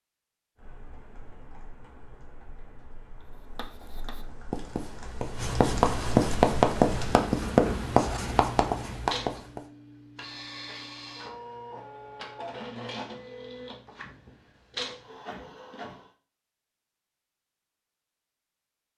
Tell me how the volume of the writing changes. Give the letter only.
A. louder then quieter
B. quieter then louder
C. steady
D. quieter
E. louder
A.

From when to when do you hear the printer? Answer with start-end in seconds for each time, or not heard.
9.1-16.1.